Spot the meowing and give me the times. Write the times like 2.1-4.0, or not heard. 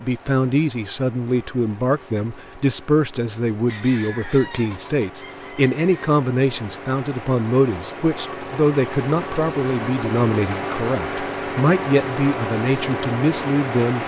not heard.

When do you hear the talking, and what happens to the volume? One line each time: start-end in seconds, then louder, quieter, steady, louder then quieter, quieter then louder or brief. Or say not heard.
0.0-14.0 steady.